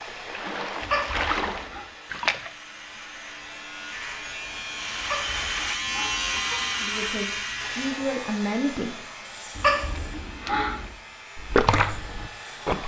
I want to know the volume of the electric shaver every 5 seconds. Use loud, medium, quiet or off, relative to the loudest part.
medium, loud, quiet.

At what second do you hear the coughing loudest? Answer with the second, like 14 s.
10 s.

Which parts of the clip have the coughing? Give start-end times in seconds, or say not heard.
0.8-1.8, 5.0-6.6, 9.6-10.9.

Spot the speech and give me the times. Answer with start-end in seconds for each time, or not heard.
6.8-8.9.